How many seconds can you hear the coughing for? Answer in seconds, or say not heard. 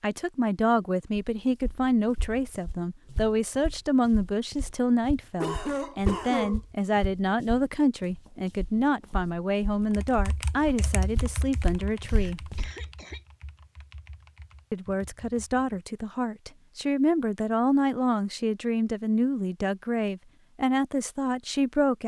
2 s.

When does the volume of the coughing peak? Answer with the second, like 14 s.
6 s.